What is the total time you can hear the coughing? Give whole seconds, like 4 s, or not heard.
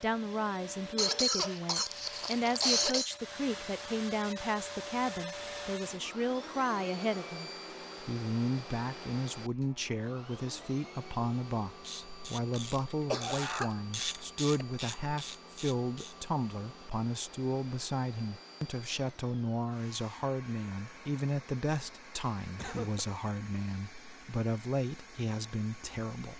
4 s.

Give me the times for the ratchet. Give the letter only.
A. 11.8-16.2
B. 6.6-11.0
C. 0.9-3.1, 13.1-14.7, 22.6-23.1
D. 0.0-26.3
A.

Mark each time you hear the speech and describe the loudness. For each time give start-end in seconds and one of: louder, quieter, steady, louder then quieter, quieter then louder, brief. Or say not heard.
0.0-26.3 steady.